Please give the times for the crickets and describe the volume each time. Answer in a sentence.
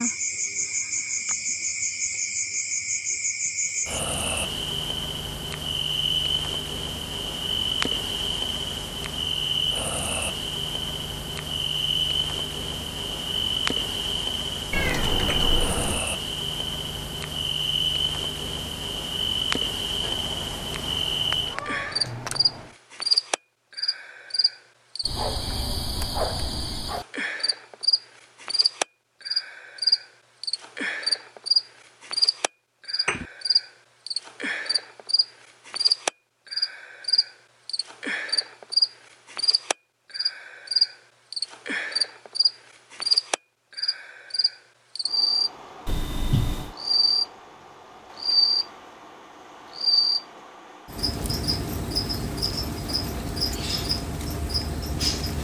The crickets can be heard from 0.0 to 55.3 s, at a steady volume.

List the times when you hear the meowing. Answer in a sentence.
The meowing can be heard from 14.7 to 16.1 s, from 20.0 to 22.6 s and from 45.9 to 46.8 s.